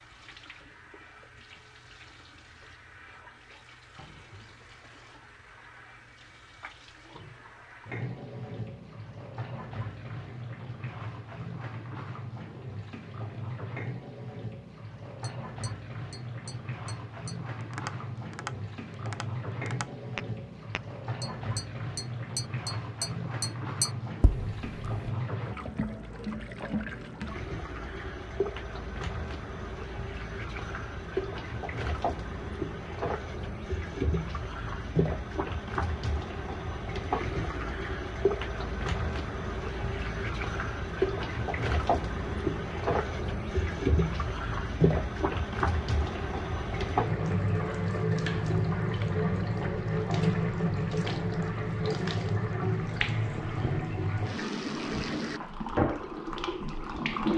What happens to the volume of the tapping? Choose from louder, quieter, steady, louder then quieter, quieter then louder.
louder.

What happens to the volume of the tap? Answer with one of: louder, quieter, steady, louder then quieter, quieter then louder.
louder.